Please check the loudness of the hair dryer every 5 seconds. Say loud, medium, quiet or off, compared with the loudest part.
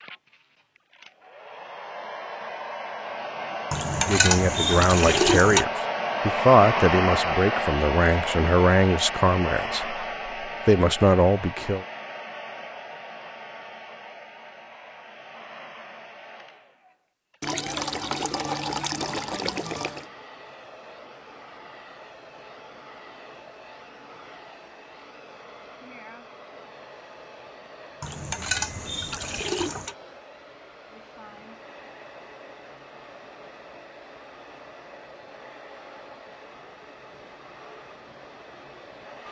medium, loud, medium, quiet, quiet, quiet, quiet, quiet.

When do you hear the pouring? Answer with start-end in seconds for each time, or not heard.
3.7-5.7, 17.4-20.1, 28.0-29.9.